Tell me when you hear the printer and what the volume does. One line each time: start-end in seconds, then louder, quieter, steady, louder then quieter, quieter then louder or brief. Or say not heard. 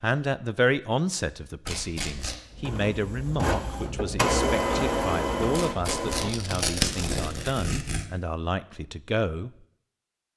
2.5-6.7 louder then quieter.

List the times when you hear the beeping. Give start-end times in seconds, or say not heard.
not heard.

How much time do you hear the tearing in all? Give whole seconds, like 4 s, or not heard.
3 s.